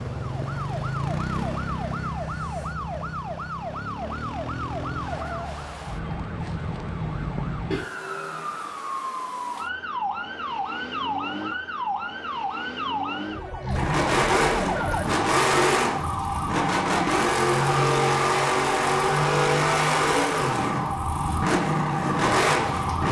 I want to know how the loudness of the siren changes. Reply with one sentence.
The volume of the siren stays about the same.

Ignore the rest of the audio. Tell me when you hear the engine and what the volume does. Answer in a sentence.
You can hear the engine from 13.6 to 23.0 s, at a steady volume.